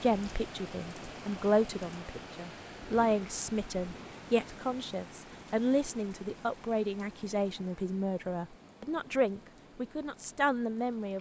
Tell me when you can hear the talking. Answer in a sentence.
The talking can be heard from 0.0 to 11.1 s.